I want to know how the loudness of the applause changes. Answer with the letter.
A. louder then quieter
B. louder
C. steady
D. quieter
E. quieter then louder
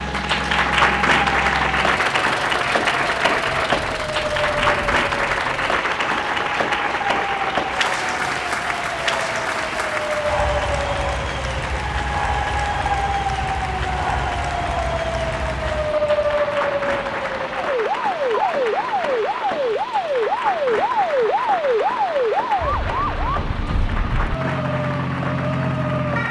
D.